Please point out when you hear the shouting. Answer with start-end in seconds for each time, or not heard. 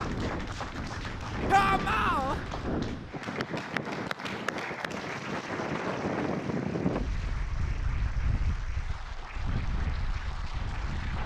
1.5-2.4.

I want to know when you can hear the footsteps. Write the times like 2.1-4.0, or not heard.
not heard.